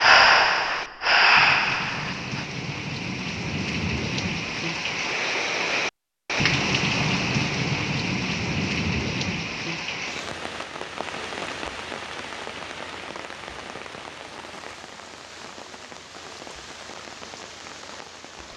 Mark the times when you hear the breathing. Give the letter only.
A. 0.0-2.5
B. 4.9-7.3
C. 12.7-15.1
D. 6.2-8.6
A.